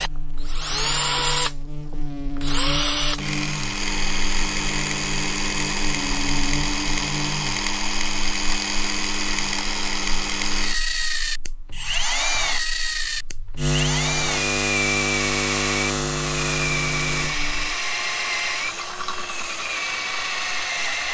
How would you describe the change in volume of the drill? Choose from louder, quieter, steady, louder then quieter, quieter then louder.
steady.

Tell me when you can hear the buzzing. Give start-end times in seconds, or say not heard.
0.0-17.8.